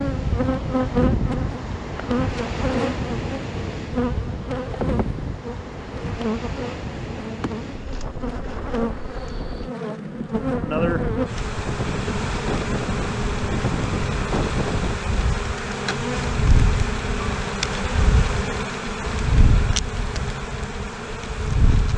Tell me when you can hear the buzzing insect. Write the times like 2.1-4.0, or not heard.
0.0-21.9.